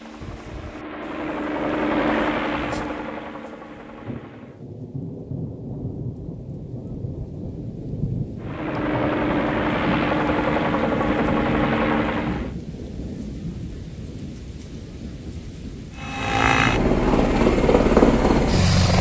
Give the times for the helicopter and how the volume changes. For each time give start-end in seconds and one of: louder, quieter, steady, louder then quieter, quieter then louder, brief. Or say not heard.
0.0-4.7 louder then quieter
8.4-12.6 steady
15.9-18.9 brief.